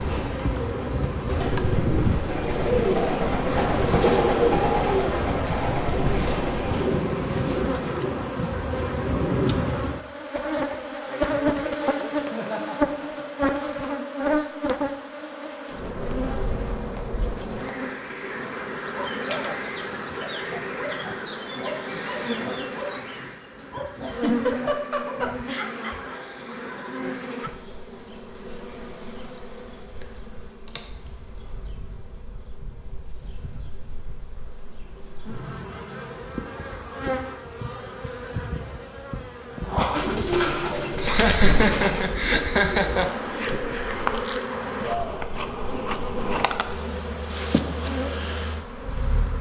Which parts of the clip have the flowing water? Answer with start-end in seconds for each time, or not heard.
not heard.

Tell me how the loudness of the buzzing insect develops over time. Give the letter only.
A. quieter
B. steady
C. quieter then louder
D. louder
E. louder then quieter
C.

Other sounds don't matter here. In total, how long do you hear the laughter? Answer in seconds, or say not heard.
5 s.